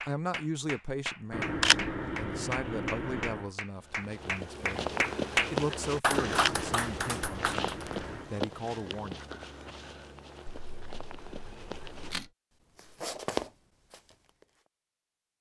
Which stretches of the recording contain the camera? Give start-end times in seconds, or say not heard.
1.3-3.5, 6.2-8.3, 10.4-12.3.